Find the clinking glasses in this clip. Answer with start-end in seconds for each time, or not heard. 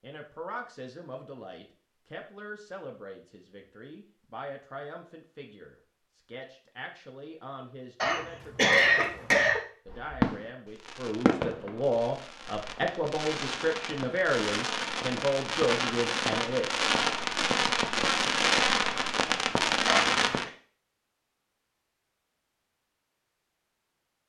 not heard.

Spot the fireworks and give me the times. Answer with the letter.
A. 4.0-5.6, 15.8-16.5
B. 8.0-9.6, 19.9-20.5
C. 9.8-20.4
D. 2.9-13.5
C.